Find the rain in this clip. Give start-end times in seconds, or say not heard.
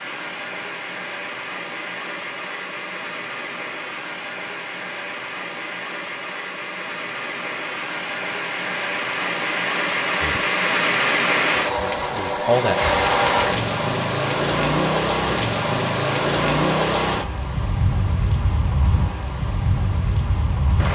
0.0-20.9.